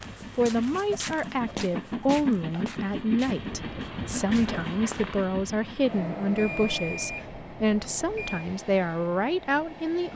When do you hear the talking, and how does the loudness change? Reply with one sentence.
You can hear the talking from 0.3 to 10.1 s, at a steady volume.